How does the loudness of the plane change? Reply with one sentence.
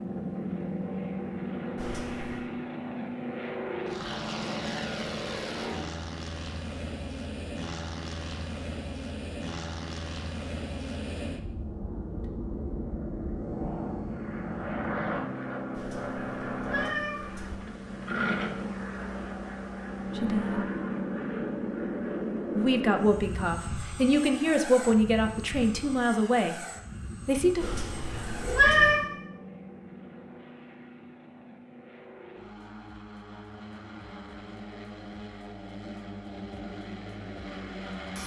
The loudness of the plane goes down.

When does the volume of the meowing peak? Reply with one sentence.
The volume of the meowing peaks at 29 seconds.